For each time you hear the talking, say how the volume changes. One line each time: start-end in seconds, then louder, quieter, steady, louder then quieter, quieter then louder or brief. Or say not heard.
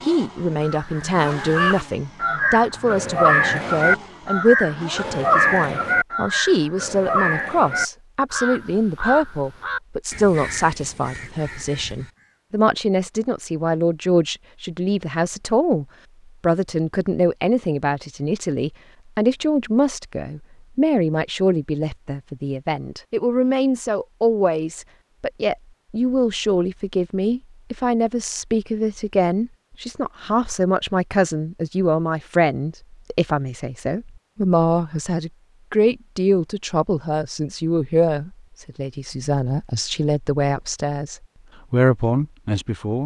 0.0-43.0 steady.